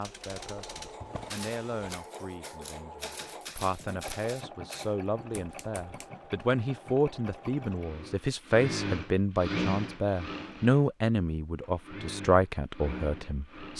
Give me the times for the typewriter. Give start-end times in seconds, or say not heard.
0.0-6.1.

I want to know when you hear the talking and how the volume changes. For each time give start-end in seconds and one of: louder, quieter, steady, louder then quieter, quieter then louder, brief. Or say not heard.
0.0-13.7 louder.